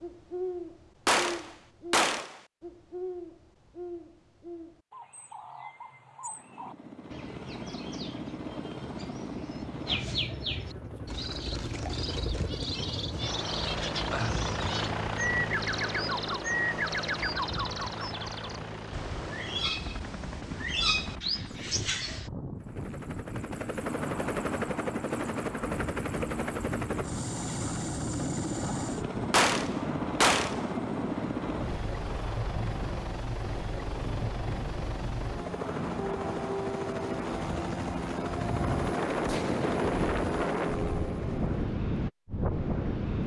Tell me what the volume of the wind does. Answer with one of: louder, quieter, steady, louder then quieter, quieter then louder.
louder.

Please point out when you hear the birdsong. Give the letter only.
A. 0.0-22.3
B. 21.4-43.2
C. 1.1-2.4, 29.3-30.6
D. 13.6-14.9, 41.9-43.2
A.